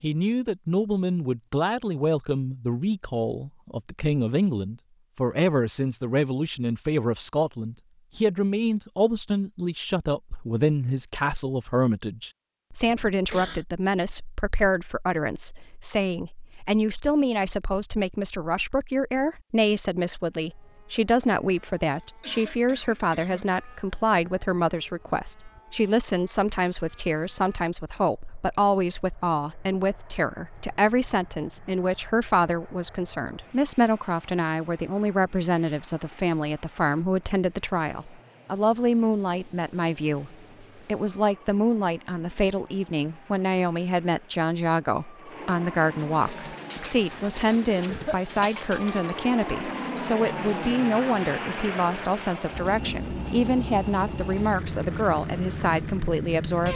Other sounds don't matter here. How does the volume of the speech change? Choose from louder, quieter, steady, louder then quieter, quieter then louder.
steady.